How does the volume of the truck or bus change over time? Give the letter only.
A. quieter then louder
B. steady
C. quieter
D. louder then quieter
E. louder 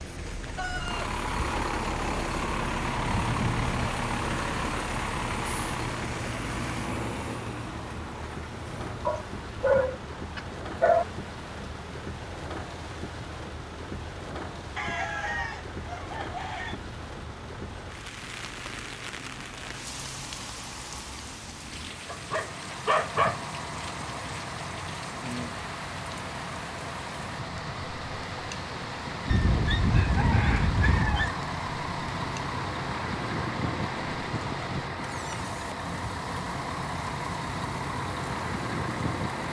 A.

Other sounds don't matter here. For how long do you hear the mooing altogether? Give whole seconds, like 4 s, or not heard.
not heard.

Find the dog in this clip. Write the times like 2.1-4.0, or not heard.
9.1-11.1, 22.1-23.4, 29.2-31.3.